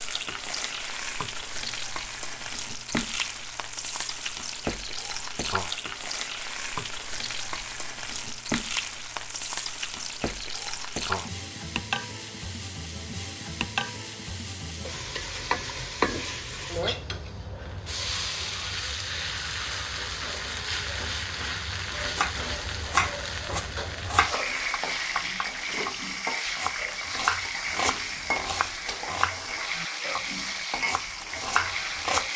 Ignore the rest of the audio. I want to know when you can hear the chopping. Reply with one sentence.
The chopping can be heard from 22.0 to 32.2 s.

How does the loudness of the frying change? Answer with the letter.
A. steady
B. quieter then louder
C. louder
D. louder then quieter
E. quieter
A.